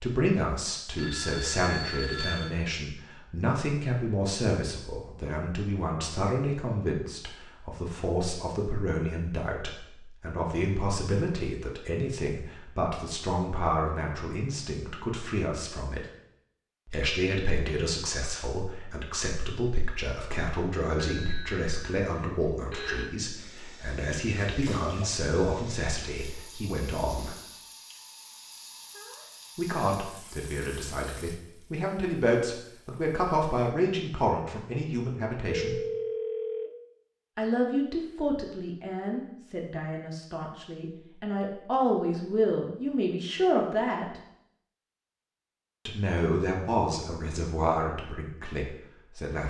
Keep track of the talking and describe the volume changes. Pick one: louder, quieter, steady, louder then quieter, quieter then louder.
steady.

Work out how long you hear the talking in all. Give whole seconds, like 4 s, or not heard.
43 s.